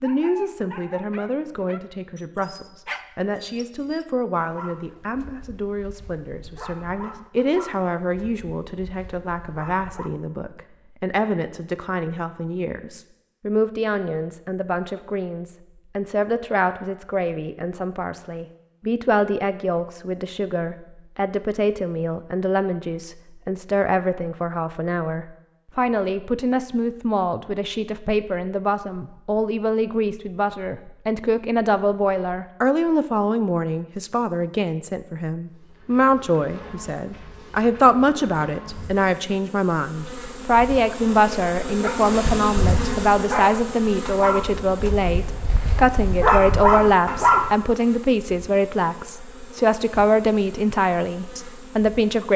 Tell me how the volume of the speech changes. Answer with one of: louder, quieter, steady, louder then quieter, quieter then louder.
louder.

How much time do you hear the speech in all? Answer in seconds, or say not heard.
52 s.